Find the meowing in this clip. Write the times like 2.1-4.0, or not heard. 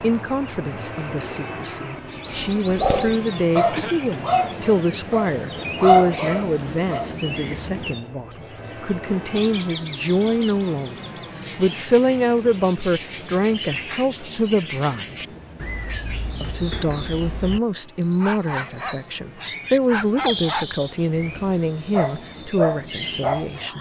not heard.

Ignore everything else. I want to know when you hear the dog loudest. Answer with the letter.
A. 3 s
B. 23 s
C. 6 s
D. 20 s
C.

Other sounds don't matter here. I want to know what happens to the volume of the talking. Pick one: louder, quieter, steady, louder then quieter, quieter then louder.
steady.